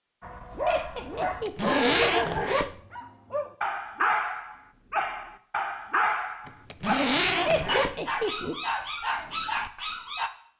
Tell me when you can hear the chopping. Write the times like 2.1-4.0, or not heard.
not heard.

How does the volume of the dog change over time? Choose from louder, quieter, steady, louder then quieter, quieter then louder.
steady.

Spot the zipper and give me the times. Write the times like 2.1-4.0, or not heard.
1.2-2.8, 6.5-8.0.